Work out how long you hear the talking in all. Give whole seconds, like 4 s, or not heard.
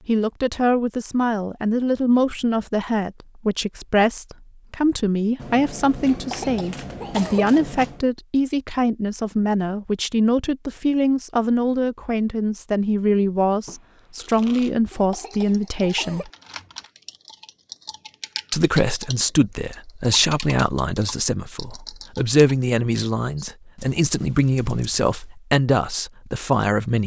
25 s.